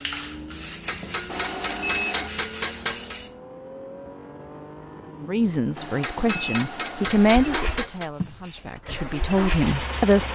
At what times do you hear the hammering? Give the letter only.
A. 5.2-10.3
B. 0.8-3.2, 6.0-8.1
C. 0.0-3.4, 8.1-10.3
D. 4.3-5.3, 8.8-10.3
B.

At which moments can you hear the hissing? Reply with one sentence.
You can hear the hissing from 0.0 to 3.4 s and from 8.1 to 10.3 s.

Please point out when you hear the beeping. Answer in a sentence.
You can hear the beeping from 1.3 to 2.3 s and from 5.8 to 7.3 s.